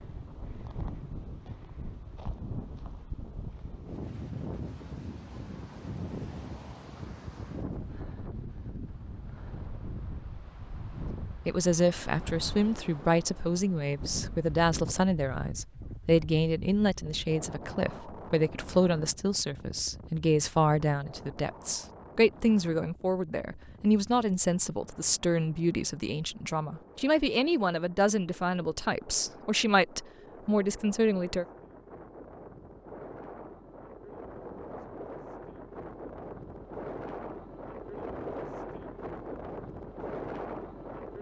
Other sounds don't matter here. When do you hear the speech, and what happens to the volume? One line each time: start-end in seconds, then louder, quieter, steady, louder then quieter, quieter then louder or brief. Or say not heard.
11.4-31.4 steady.